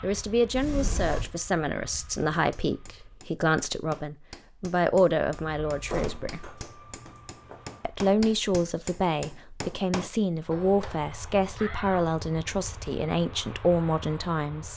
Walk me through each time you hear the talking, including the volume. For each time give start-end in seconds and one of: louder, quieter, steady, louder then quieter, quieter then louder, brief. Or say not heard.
0.0-6.5 steady
7.8-14.7 steady.